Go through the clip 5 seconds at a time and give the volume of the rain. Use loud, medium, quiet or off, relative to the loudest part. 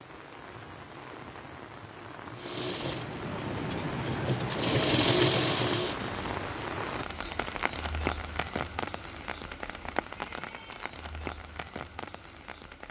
medium, loud, medium.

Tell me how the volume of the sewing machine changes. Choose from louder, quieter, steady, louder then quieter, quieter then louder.
louder then quieter.